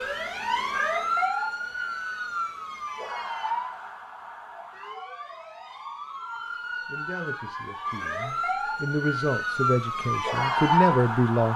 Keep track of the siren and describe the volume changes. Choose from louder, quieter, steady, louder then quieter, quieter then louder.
quieter then louder.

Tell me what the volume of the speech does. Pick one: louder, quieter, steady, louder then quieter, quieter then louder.
louder.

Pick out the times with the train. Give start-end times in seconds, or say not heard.
not heard.